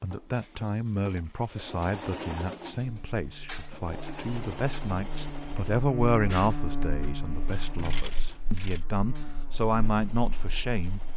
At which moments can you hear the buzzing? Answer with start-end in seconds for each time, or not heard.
2.8-11.1.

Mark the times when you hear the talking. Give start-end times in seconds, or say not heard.
0.0-11.0.